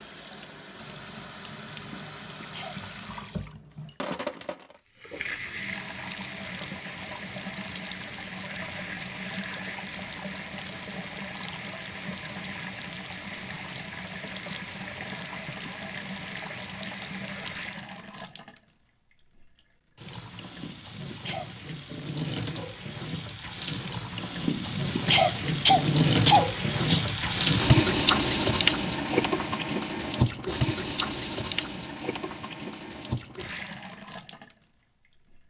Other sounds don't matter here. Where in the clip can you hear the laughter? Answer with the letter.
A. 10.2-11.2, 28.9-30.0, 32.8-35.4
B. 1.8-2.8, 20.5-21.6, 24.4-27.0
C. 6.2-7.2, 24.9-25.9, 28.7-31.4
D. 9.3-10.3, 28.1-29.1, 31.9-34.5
B.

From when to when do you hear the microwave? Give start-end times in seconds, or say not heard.
not heard.